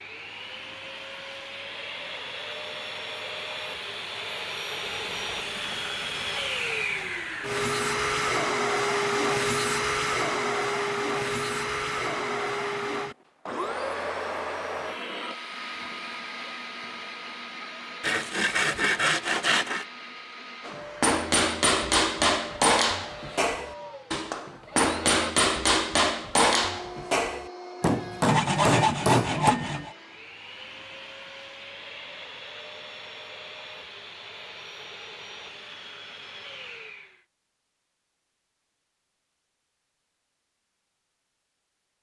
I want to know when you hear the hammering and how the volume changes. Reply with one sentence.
The hammering can be heard from 20.6 to 29.6 s, at a steady volume.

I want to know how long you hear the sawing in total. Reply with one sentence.
You can hear the sawing for 6 seconds altogether.